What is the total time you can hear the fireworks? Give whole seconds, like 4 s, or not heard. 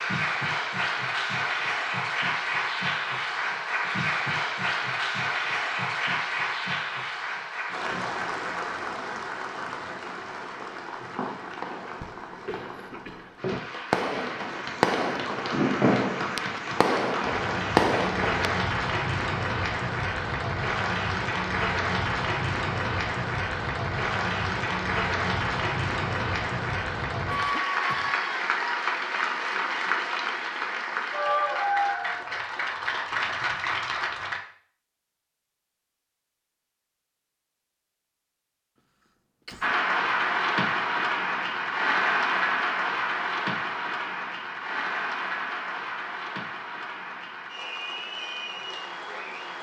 8 s.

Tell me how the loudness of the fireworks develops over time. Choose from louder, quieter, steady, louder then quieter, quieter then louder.
louder.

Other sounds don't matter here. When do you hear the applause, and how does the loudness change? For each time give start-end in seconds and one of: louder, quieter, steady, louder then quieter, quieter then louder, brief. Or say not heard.
0.0-34.4 quieter then louder
39.6-49.5 quieter.